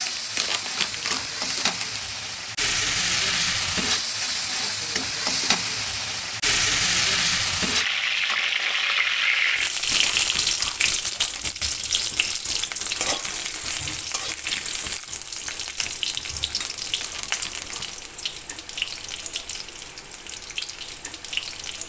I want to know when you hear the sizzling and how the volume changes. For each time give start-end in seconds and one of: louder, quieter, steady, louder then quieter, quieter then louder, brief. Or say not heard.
0.0-21.8 quieter.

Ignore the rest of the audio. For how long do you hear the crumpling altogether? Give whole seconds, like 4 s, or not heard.
5 s.